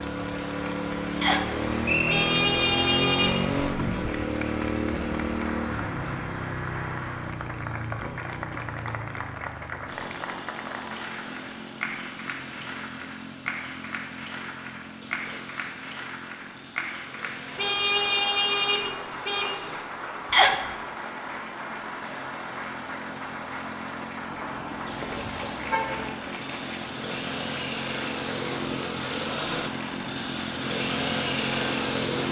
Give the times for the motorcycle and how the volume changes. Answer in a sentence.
You can hear the motorcycle from 0.0 to 32.2 s, getting quieter then louder.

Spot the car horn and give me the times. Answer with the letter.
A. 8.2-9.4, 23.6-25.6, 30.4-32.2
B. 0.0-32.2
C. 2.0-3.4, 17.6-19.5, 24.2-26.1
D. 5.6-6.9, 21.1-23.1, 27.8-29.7
C.